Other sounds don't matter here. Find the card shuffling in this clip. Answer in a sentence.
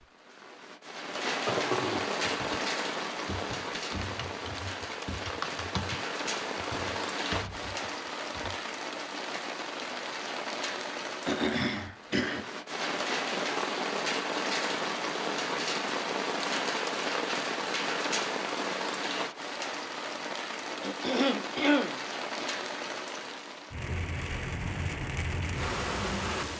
You can't hear the card shuffling here.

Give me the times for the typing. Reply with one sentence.
The typing can be heard from 2.3 to 8.6 s.